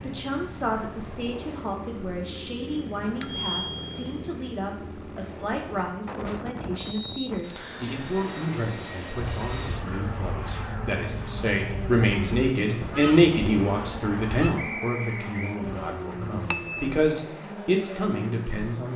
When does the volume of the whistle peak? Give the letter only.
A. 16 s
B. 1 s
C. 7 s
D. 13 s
C.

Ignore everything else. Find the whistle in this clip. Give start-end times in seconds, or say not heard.
6.8-7.9, 14.6-15.6.